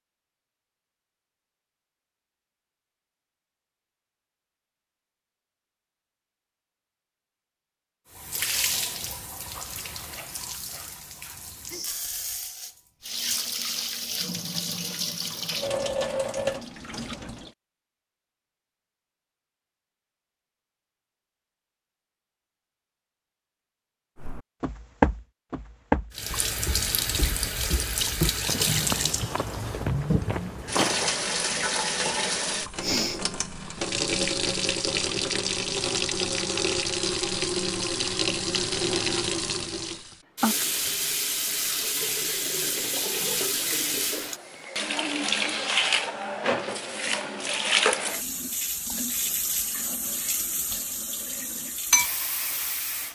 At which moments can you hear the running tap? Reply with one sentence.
You can hear the running tap from 8.1 to 17.5 s and from 26.1 to 53.1 s.